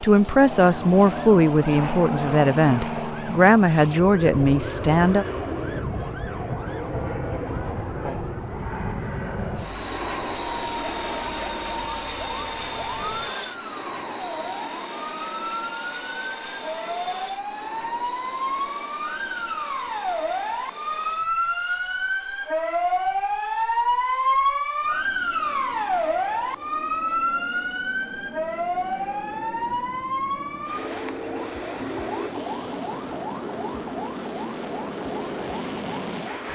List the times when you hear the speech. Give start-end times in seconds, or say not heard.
0.0-5.2.